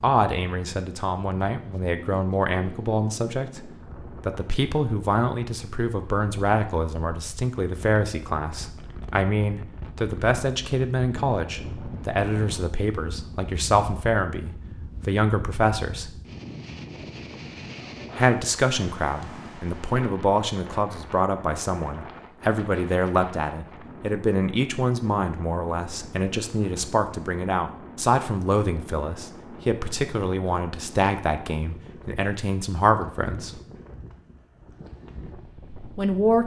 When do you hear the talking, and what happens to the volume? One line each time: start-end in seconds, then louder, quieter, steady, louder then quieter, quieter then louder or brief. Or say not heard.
0.0-16.1 steady
18.1-33.5 steady
35.8-36.4 brief.